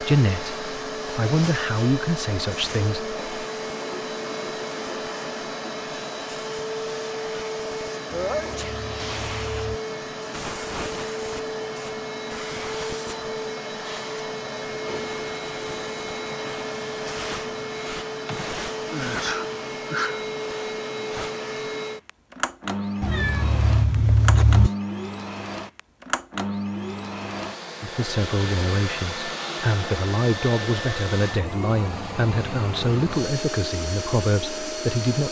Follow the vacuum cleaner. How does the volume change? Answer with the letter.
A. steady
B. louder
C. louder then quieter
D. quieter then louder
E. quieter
A.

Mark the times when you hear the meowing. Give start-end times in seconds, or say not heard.
8.1-9.8, 23.0-24.7.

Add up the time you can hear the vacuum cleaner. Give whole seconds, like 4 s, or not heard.
35 s.